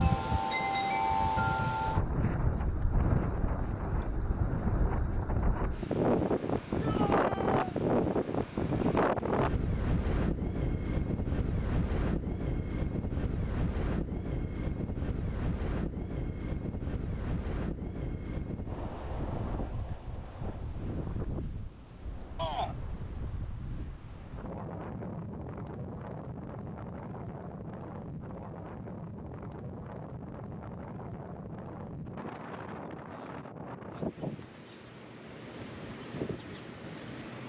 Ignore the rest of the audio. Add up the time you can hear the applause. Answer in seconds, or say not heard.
not heard.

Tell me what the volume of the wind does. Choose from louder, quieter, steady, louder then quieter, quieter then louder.
quieter.